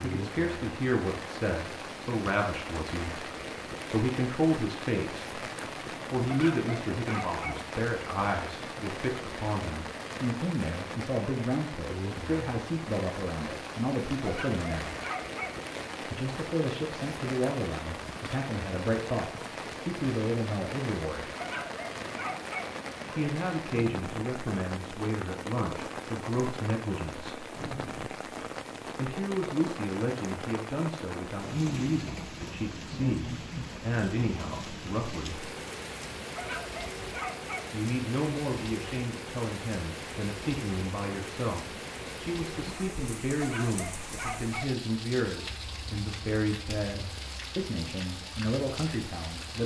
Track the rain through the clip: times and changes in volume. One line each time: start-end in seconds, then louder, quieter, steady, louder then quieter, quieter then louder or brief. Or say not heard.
0.0-49.6 steady.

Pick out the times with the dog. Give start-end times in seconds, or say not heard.
6.2-7.6, 14.2-15.6, 21.3-22.7, 36.2-37.6, 43.3-44.7.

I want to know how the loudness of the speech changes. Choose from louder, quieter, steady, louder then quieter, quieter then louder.
steady.